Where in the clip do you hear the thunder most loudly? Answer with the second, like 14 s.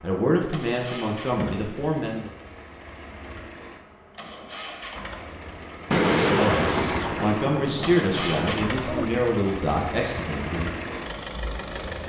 6 s.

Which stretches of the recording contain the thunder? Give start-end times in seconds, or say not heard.
5.9-9.1.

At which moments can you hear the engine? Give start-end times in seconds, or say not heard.
0.0-12.0.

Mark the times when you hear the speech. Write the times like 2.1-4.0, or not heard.
0.0-2.3, 6.2-10.8.